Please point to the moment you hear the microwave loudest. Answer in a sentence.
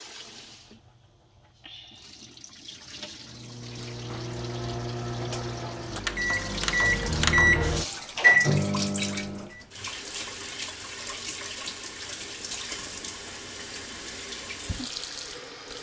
The volume of the microwave peaks at 8 seconds.